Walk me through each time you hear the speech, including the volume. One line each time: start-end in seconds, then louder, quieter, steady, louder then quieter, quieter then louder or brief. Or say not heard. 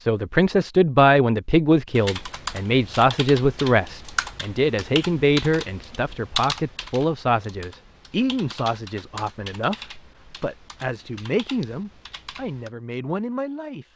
0.1-13.8 quieter.